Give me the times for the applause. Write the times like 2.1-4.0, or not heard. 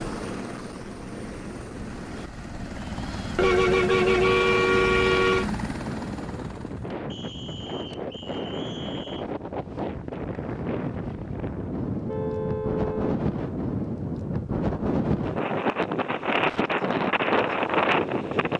not heard.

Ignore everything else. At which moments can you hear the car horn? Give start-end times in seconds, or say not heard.
3.4-5.5, 12.1-13.2.